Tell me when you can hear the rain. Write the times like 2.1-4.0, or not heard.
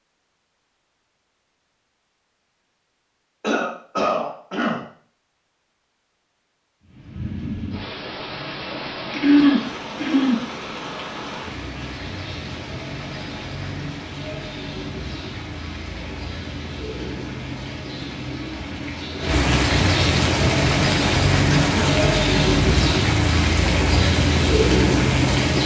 6.8-25.6.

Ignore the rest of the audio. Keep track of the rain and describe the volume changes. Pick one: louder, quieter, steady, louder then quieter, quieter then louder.
louder.